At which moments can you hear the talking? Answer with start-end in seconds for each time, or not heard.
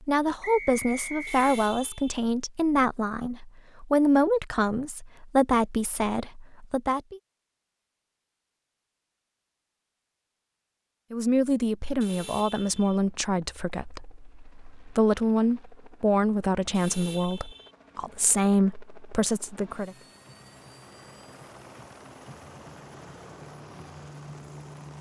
0.0-7.2, 11.1-19.9.